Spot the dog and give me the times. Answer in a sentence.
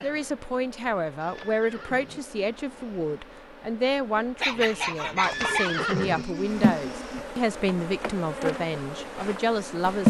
The dog can be heard from 4.4 to 5.8 s.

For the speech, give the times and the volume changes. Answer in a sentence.
The speech can be heard from 0.0 to 10.0 s, at a steady volume.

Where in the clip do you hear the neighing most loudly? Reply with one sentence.
The volume of the neighing peaks at 6 seconds.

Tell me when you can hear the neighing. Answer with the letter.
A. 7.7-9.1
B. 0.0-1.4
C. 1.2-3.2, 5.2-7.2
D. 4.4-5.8
C.